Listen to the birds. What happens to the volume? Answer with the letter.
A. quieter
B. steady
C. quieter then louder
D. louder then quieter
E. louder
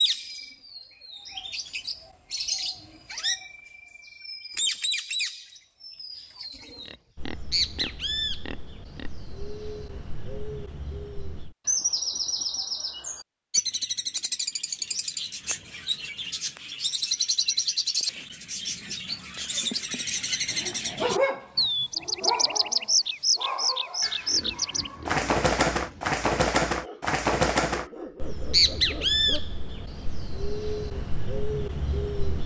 E.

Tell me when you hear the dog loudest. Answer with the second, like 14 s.
21 s.